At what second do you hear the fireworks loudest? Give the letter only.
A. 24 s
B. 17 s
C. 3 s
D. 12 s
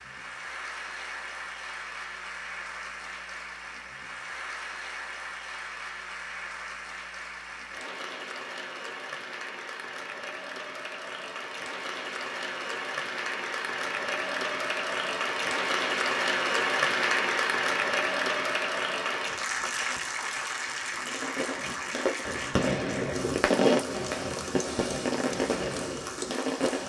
A.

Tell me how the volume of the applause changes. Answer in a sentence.
The volume of the applause goes up, then down.